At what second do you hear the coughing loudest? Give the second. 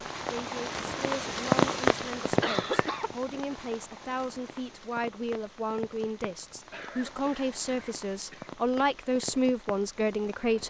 3 s.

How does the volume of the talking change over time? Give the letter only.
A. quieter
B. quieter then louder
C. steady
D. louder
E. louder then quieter
D.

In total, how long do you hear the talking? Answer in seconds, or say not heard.
10 s.